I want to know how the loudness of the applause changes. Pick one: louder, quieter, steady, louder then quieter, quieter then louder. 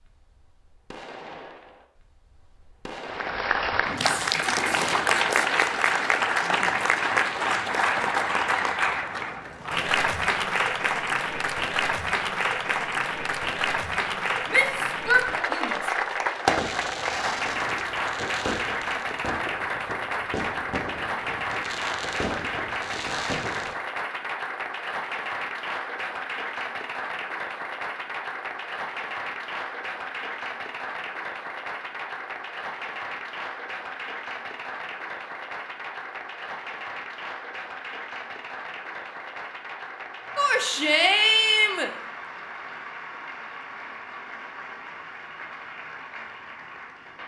quieter.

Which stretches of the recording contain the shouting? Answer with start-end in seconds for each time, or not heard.
14.4-15.9, 40.4-41.9.